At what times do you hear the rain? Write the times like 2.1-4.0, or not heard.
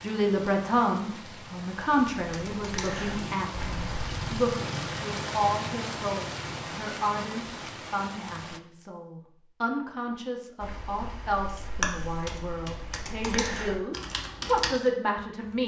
0.0-8.6.